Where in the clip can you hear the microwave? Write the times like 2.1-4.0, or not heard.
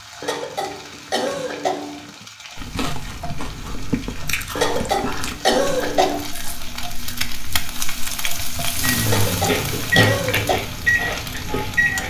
8.8-12.0.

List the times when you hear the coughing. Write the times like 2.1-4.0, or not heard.
0.2-2.2, 4.5-6.3, 9.1-10.6.